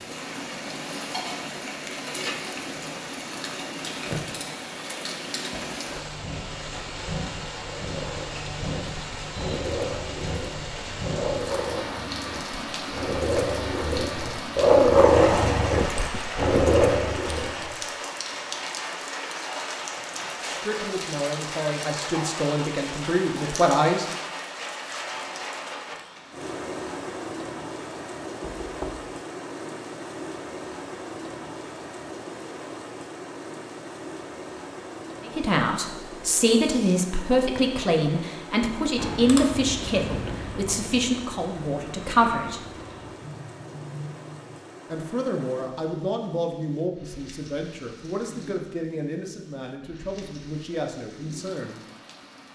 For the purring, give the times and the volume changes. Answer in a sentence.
You can't hear the purring here.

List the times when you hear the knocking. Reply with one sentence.
The knocking can be heard from 28.4 to 29.1 s.